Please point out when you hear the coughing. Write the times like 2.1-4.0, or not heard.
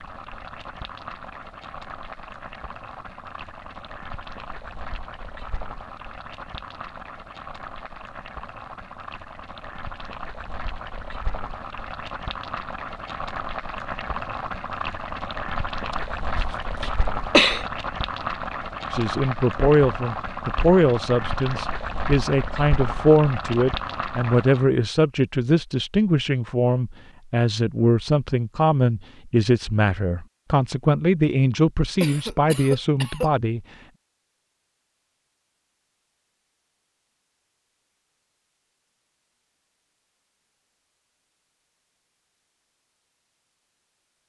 16.4-17.6, 32.0-33.3.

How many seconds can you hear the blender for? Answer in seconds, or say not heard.
not heard.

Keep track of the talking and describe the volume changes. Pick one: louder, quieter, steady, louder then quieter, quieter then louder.
steady.